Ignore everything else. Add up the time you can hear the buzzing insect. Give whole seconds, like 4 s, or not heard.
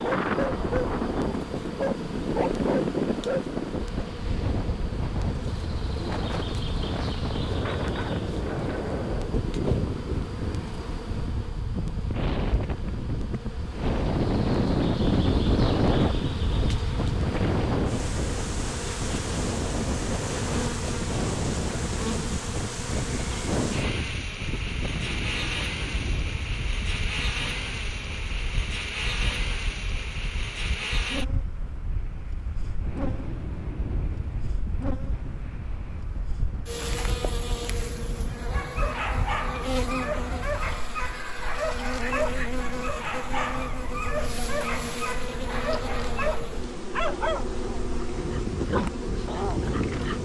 50 s.